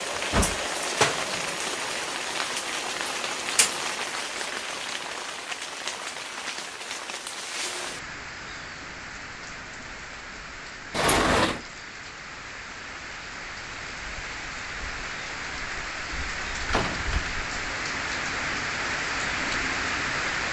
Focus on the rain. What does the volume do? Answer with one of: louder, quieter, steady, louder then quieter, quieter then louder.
quieter then louder.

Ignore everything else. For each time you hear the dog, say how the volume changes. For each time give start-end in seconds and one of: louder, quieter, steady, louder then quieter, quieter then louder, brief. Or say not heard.
not heard.